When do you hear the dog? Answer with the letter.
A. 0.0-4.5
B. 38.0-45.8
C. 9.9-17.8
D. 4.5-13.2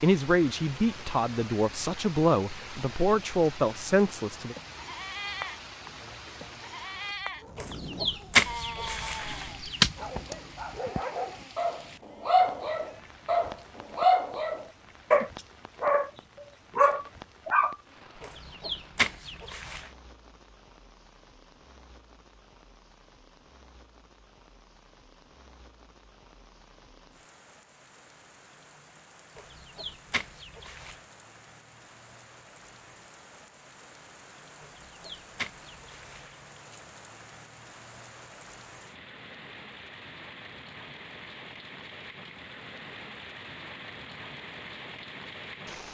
C.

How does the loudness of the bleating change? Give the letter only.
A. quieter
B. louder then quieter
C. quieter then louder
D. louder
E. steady
A.